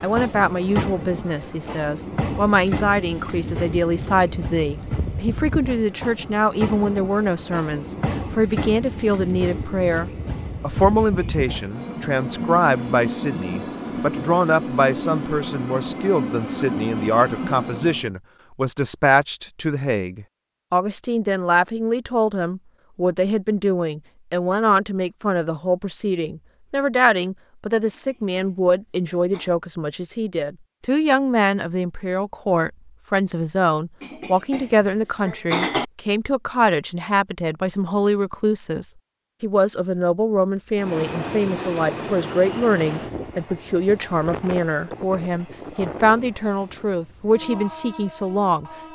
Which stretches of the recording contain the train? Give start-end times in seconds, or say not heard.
0.0-18.1, 40.8-48.8.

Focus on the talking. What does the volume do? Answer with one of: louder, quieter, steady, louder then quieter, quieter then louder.
steady.